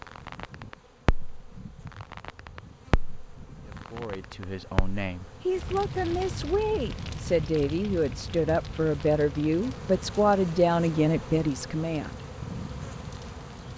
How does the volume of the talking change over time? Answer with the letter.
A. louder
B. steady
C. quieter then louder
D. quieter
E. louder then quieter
A.